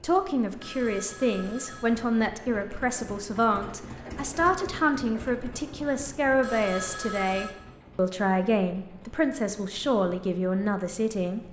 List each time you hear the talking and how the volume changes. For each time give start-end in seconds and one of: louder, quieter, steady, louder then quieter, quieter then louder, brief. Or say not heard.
0.0-11.4 steady.